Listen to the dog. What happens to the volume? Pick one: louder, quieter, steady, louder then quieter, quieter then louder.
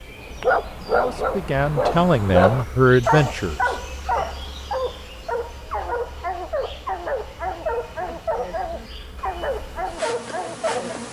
quieter.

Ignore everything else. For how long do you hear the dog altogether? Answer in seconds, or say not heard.
11 s.